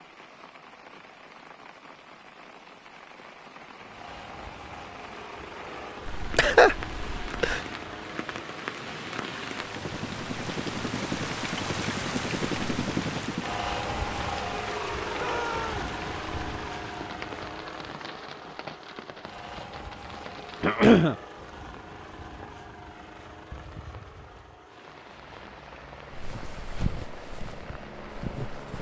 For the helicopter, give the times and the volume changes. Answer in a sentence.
You can hear the helicopter from 3.8 to 28.7 s, getting louder then quieter.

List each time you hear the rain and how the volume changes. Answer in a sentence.
The rain can be heard from 0.0 to 28.7 s, getting louder then quieter.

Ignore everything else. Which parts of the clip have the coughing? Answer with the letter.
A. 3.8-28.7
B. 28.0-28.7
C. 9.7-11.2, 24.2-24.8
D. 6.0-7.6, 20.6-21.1
D.